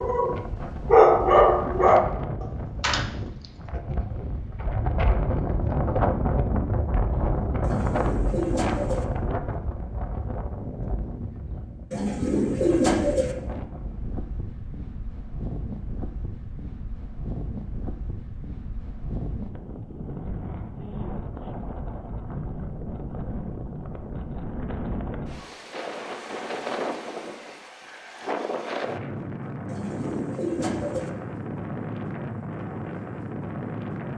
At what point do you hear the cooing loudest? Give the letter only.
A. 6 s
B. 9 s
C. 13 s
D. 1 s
C.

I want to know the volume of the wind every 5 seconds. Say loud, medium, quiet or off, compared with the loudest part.
medium, loud, medium, medium, medium, medium, medium.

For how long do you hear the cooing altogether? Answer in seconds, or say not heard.
4 s.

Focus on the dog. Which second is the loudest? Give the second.
1 s.